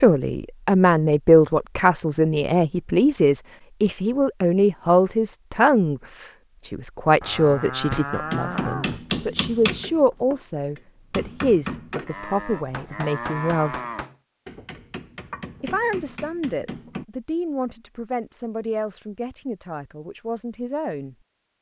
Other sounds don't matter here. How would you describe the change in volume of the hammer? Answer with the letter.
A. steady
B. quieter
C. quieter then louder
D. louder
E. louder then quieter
B.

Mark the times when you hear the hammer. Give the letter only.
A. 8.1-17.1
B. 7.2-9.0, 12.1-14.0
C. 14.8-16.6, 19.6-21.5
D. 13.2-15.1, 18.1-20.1
A.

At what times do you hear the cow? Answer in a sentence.
The cow can be heard from 7.2 to 9.0 s and from 12.1 to 14.0 s.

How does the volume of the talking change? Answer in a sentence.
The loudness of the talking goes down.